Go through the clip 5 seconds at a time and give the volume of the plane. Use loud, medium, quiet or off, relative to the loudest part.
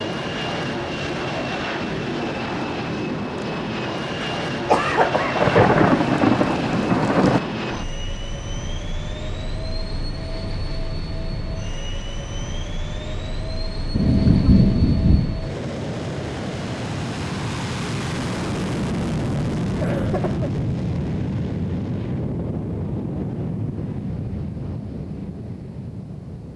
loud, loud, medium, loud, loud, medium.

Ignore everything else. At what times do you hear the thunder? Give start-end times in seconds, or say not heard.
5.4-7.4, 13.9-15.3.